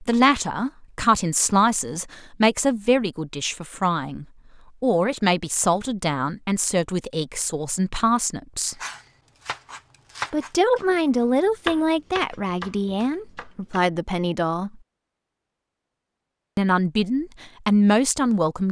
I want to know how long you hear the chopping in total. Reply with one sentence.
The chopping can be heard for 5 seconds in total.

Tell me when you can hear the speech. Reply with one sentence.
The speech can be heard from 0.0 to 8.8 s, from 10.3 to 14.7 s and from 16.6 to 18.6 s.